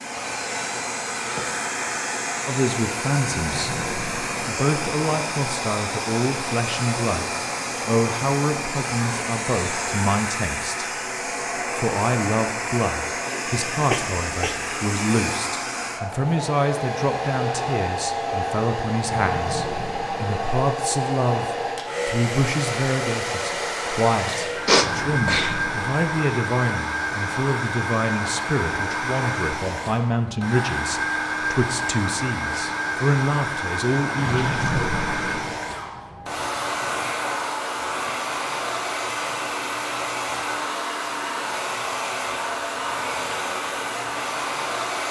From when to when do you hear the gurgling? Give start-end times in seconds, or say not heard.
3.4-4.4, 19.0-20.4, 24.7-25.9, 34.1-35.5.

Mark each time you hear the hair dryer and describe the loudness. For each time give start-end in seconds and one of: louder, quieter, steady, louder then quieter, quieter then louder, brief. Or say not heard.
0.0-45.0 steady.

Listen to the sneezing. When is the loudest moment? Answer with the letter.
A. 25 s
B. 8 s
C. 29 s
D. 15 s
A.